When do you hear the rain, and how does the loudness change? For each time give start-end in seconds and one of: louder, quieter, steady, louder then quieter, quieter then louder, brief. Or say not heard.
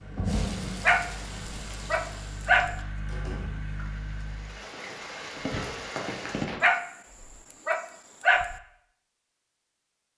0.0-6.5 quieter then louder.